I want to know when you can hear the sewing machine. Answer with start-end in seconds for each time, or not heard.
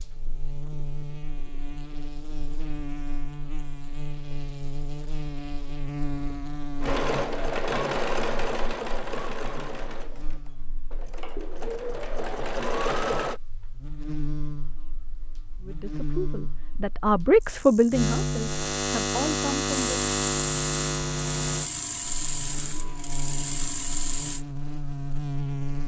6.8-13.4, 19.7-24.4.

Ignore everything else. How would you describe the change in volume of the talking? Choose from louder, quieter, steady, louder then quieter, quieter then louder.
louder then quieter.